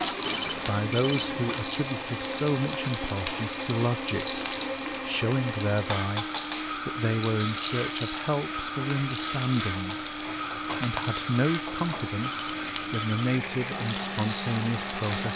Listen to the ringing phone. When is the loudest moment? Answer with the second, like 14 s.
1 s.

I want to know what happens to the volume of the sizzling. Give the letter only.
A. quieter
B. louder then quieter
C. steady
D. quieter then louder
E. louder
C.